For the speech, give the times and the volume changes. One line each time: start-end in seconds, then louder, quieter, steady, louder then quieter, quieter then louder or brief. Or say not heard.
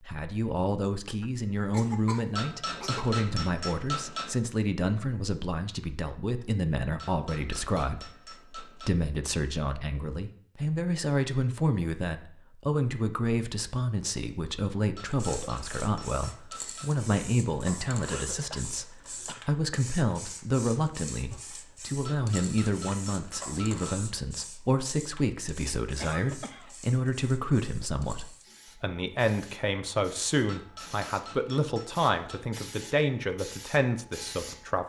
0.0-34.8 steady.